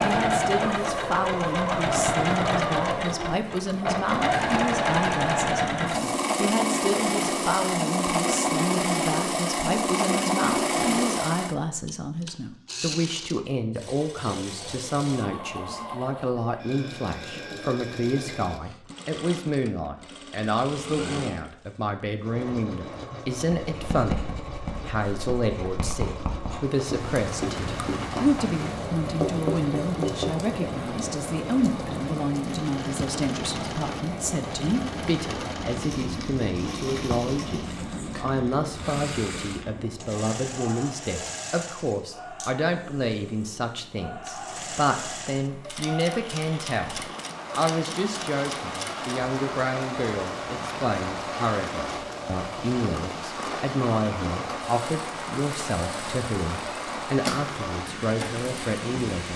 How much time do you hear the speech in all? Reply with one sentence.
You can hear the speech for 59 seconds altogether.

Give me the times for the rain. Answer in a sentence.
The rain can be heard from 26.8 to 59.3 s.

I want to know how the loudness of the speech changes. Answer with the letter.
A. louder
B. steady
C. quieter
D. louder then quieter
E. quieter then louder
B.